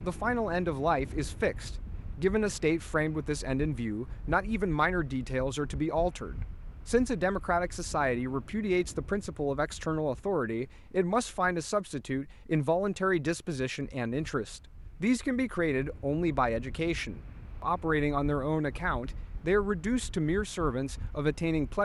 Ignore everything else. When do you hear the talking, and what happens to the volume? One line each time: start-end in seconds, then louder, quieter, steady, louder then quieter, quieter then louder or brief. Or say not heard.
0.0-21.7 steady.